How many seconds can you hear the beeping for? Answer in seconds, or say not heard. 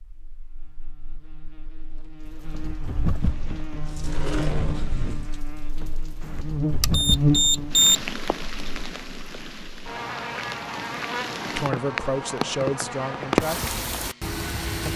2 s.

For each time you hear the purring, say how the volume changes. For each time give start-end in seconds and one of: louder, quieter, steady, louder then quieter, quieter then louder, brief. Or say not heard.
not heard.